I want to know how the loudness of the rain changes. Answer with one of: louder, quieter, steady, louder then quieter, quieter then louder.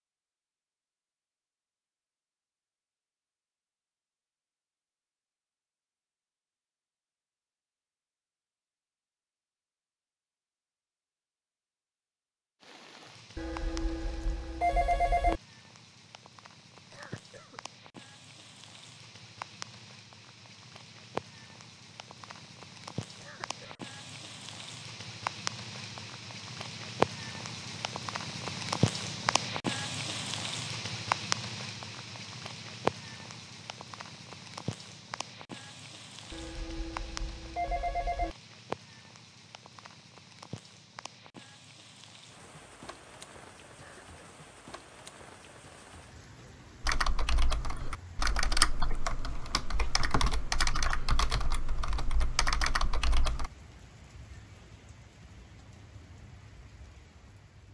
louder then quieter.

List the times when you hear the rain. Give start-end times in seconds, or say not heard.
12.6-57.6.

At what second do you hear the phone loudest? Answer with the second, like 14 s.
15 s.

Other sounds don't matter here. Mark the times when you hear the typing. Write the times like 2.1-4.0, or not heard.
46.8-53.5.